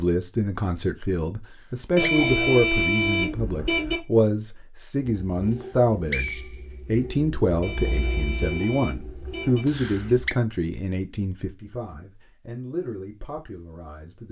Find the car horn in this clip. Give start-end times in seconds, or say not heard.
1.9-4.0, 7.6-9.7.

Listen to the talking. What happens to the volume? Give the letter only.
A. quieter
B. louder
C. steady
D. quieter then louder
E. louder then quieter
A.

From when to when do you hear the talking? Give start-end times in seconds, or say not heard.
0.0-14.2.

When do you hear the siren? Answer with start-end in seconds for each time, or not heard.
not heard.